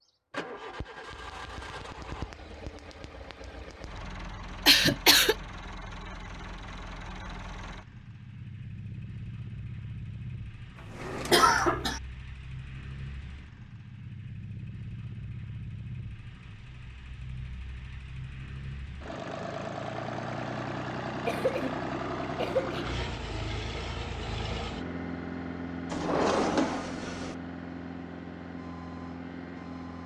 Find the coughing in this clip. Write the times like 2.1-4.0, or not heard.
4.7-5.3, 11.3-12.0, 21.2-22.9.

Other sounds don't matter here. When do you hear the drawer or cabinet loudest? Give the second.
26 s.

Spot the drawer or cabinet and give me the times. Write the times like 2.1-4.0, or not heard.
10.8-11.7, 25.9-27.4.